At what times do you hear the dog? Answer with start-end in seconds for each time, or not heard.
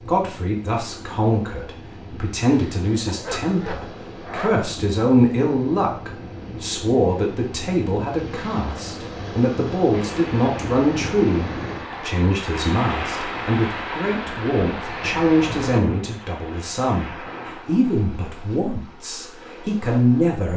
3.0-4.6.